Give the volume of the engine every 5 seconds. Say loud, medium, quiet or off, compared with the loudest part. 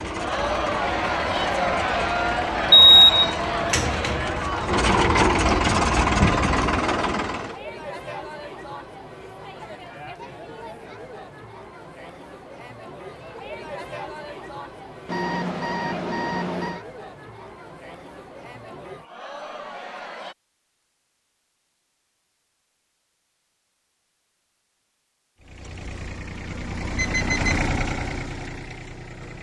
medium, loud, off, off, off, medium.